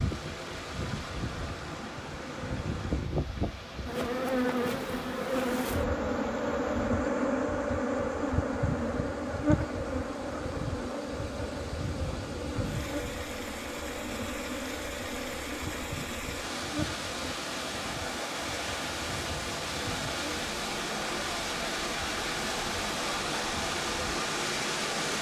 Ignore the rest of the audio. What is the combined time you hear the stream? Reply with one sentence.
The stream can be heard for 25 seconds in total.